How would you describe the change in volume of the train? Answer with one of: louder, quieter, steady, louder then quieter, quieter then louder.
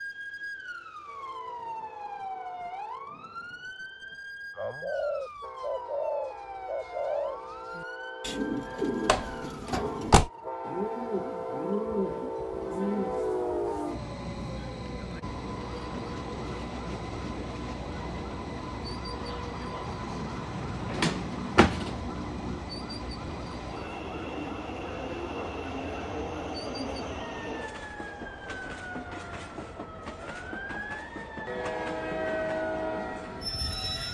louder.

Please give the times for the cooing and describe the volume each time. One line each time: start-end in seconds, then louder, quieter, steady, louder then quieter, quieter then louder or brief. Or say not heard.
4.5-13.2 steady.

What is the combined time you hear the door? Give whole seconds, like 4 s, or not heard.
2 s.